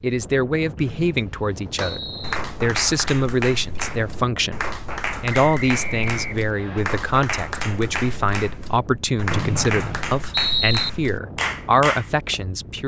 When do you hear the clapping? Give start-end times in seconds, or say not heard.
1.8-12.3.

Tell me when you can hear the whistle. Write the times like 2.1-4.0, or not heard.
0.8-2.4, 5.5-6.8, 9.3-10.9.